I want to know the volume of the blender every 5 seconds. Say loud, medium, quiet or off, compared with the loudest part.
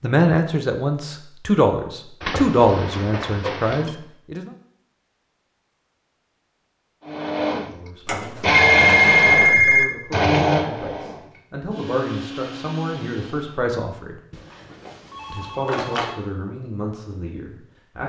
off, loud, loud, off.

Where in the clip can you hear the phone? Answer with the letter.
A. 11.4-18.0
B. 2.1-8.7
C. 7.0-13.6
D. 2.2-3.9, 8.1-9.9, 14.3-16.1
D.